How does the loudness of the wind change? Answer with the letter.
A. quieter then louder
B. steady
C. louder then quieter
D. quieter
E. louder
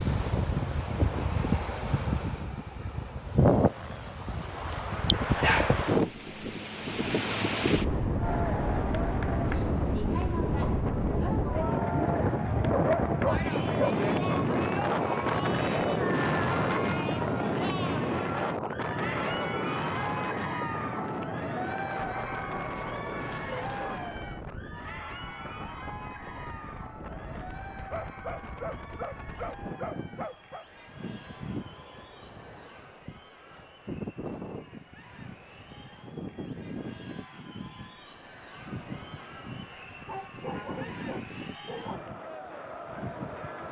D.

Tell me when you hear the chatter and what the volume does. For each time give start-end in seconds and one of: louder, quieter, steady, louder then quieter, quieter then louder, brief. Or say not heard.
8.2-43.6 quieter then louder.